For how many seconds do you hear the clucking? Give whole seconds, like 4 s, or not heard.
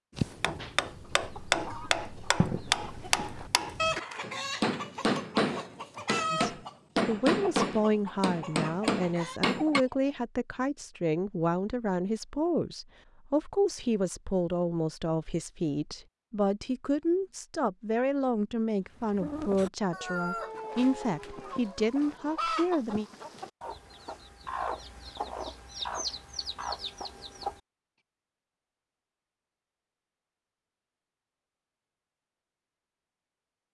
18 s.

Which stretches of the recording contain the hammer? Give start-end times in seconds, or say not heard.
0.1-9.8.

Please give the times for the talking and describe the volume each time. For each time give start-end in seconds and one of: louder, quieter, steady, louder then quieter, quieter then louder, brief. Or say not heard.
6.3-23.1 steady.